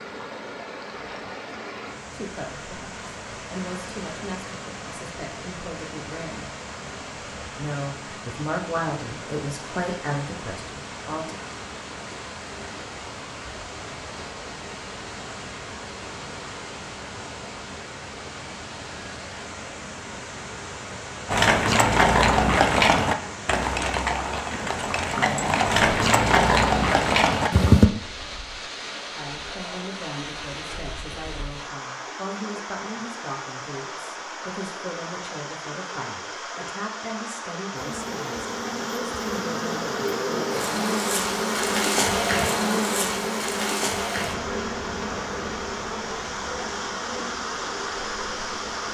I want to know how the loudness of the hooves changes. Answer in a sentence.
The volume of the hooves goes down, then up.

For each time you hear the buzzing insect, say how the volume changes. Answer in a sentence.
The buzzing insect can be heard from 37.8 to 48.8 s, getting louder then quieter.